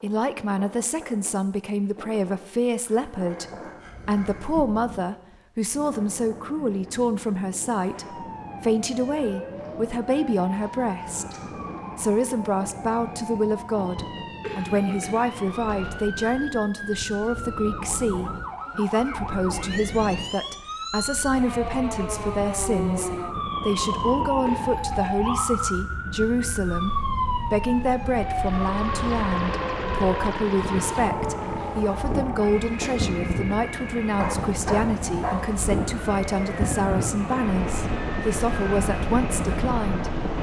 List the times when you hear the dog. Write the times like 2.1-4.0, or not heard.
2.9-4.7, 34.1-35.4.